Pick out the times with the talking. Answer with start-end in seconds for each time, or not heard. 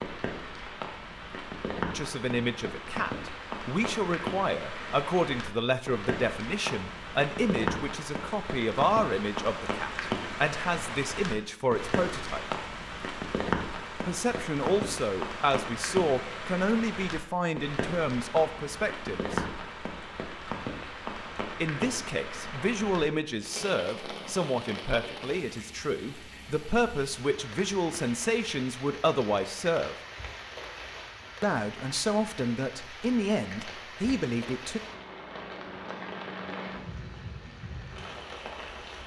1.9-12.6, 14.0-19.4, 21.6-29.9, 31.4-34.8.